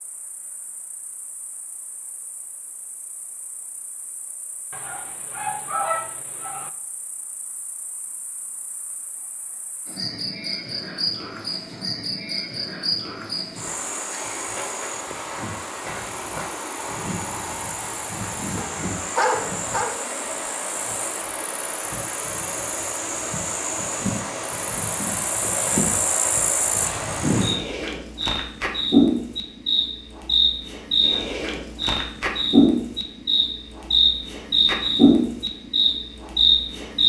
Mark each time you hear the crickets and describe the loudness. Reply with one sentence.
You can hear the crickets from 0.0 to 37.0 s, getting louder.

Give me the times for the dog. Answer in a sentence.
You can hear the dog from 4.7 to 6.7 s and from 18.6 to 20.1 s.